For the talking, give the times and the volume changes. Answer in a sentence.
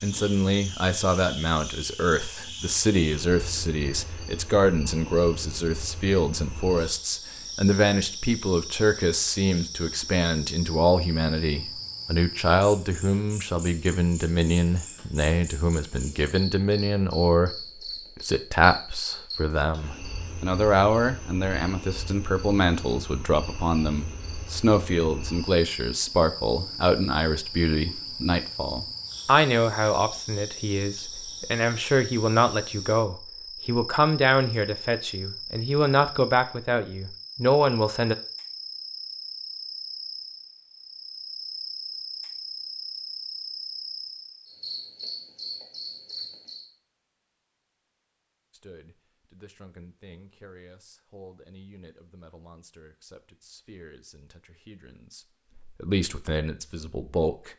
The talking can be heard from 0.0 to 17.6 s, at a steady volume; from 18.1 to 38.1 s, at a steady volume; and from 48.5 to 57.5 s, getting louder.